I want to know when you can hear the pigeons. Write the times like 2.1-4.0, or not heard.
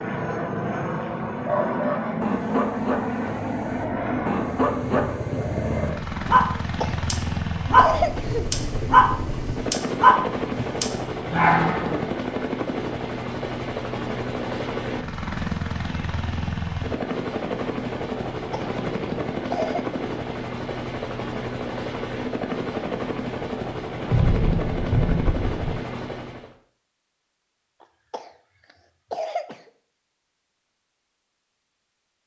not heard.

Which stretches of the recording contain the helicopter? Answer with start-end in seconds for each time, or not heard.
0.0-26.6.